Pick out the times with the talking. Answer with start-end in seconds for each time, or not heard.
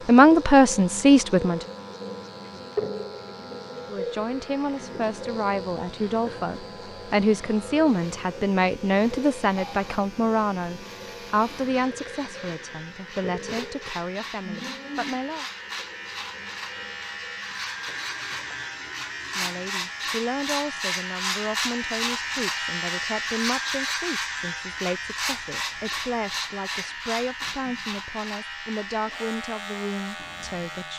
0.1-1.6, 3.9-15.4, 19.3-30.9.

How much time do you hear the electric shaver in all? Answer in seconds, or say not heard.
31 s.